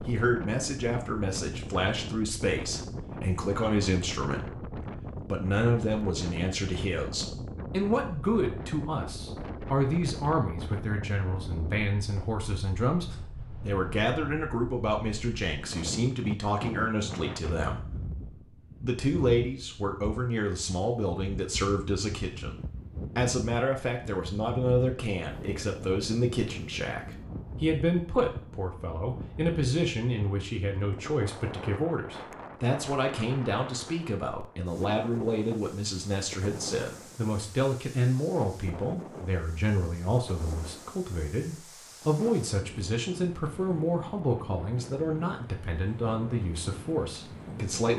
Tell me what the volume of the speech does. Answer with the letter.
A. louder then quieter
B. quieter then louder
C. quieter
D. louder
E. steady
E.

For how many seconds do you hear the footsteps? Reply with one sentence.
The footsteps can't be heard in this clip.